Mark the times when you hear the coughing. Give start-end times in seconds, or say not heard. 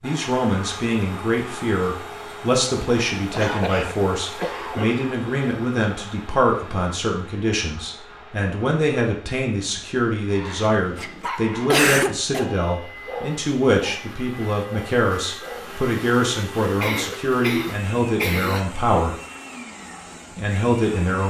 3.1-5.1, 11.3-12.4, 16.8-18.6.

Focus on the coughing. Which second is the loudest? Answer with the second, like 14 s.
12 s.